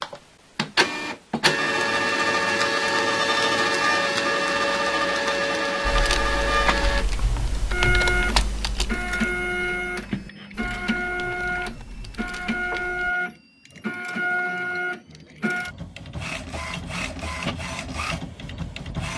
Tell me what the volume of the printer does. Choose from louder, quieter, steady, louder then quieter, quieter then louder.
quieter.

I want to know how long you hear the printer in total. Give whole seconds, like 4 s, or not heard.
19 s.